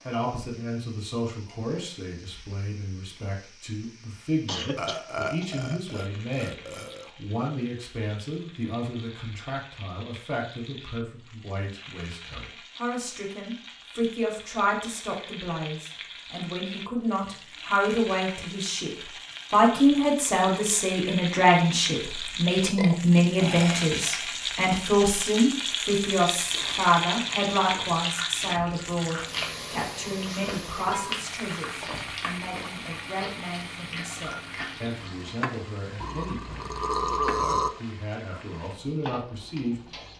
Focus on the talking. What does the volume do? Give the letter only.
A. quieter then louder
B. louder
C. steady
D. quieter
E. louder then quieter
E.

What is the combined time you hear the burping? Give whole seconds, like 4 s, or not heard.
6 s.